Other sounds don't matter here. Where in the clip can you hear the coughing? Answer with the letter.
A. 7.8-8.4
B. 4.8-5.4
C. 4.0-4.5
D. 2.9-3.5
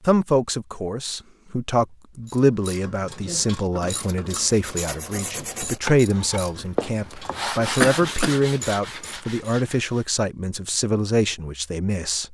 A.